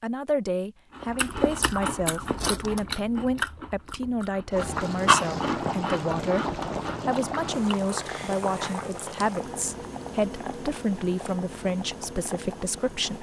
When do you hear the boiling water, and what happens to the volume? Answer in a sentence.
The boiling water can be heard from 4.5 to 13.1 s, getting quieter.